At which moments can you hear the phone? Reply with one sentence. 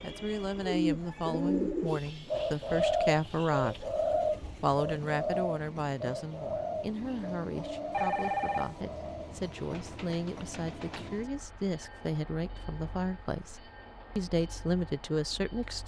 You can hear the phone from 7.9 to 8.8 s.